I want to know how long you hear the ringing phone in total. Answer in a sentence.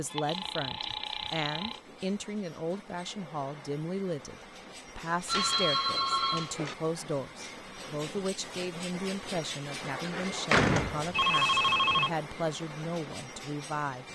The ringing phone can be heard for 4 seconds in total.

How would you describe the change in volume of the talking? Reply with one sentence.
The loudness of the talking stays about the same.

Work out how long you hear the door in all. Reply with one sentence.
You can hear the door for 2 seconds altogether.